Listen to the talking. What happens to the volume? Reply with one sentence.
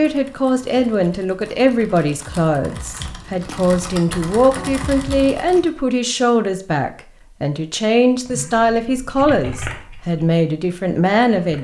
The loudness of the talking stays about the same.